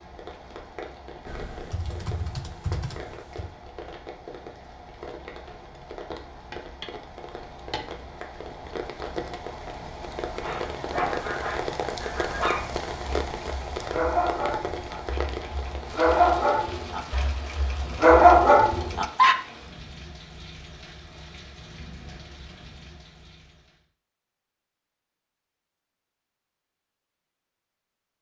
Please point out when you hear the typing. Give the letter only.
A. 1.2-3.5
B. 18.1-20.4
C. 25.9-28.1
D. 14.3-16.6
A.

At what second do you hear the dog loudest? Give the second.
18 s.